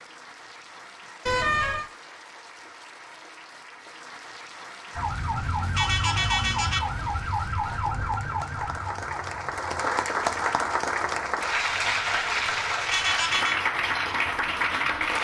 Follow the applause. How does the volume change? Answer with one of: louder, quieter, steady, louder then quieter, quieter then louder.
louder.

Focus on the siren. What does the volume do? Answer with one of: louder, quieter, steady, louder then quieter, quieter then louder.
quieter.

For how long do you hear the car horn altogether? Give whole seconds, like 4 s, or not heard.
3 s.